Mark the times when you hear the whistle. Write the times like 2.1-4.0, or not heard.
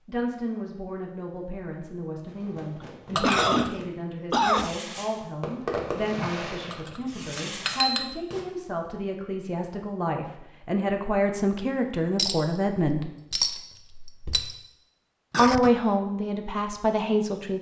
not heard.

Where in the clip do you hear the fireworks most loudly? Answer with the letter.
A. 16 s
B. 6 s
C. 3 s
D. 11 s
B.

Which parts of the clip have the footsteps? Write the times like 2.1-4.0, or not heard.
not heard.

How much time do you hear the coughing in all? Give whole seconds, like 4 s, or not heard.
2 s.